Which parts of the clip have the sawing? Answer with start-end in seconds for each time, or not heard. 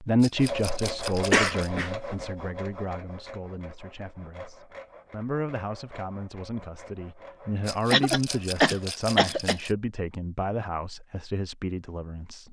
0.3-9.7.